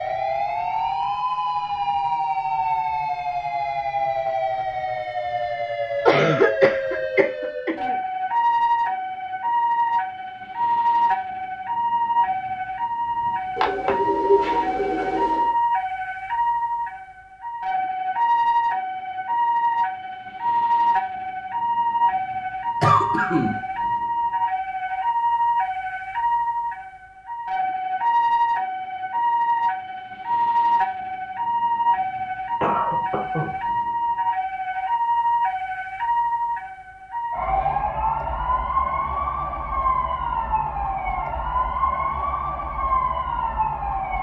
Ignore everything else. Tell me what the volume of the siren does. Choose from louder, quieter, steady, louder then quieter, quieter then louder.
steady.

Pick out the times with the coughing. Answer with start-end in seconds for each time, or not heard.
6.0-8.0, 22.8-23.6, 32.6-33.5.